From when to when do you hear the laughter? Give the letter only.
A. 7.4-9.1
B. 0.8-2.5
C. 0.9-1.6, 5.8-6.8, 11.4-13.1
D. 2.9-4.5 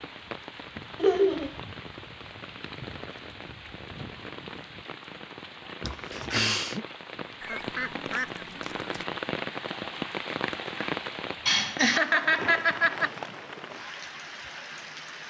C.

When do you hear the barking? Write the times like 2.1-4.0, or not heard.
not heard.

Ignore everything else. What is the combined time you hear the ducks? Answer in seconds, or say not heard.
2 s.